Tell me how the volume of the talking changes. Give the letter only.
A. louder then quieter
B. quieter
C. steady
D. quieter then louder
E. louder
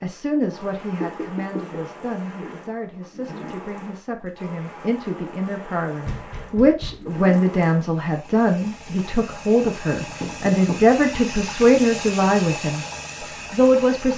E.